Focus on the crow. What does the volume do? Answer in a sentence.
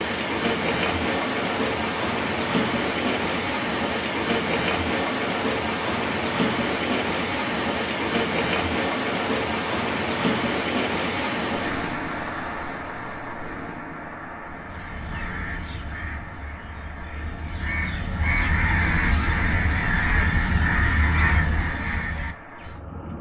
The loudness of the crow goes up.